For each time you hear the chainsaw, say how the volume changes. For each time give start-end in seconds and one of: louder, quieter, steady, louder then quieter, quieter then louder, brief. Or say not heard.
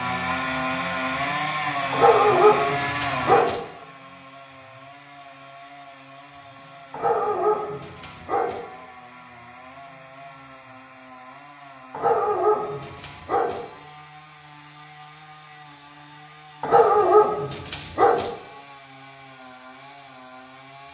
0.0-20.8 quieter.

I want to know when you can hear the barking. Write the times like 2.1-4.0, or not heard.
1.9-3.6, 6.9-8.6, 11.9-13.6, 16.6-18.3.